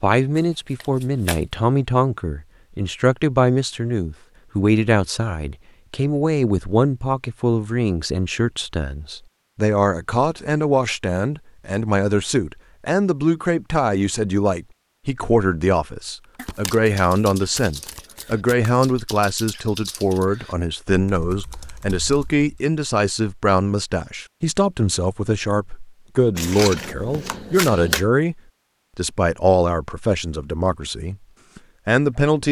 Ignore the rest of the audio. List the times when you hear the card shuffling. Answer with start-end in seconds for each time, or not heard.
0.3-1.6, 16.4-18.8, 26.4-28.1.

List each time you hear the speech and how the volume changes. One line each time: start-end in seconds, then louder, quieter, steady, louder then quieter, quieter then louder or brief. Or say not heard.
0.0-32.4 steady.